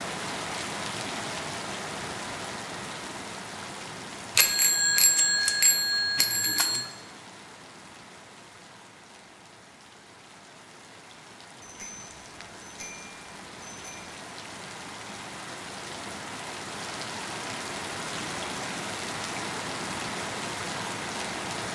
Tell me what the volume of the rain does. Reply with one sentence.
The loudness of the rain goes down, then up.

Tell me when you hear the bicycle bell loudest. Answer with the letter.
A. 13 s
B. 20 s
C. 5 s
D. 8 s
C.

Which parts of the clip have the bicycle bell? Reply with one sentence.
You can hear the bicycle bell from 4.3 to 6.9 s and from 11.6 to 14.2 s.